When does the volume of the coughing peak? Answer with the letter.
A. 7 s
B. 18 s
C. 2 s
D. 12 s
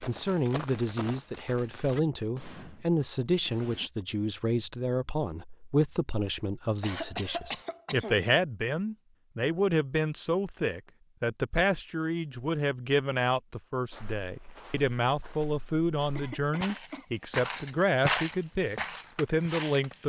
A.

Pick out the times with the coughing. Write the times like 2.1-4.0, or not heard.
6.8-8.2, 16.1-17.1.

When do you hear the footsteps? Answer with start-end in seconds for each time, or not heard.
0.0-1.4, 13.8-19.9.